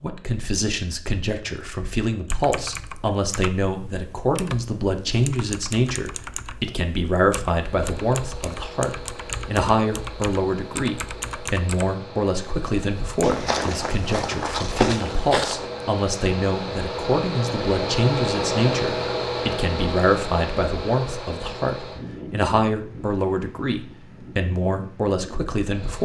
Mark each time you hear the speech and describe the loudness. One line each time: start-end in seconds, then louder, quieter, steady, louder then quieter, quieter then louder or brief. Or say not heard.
0.0-26.0 steady.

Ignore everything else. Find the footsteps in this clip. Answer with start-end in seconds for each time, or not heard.
13.2-15.7.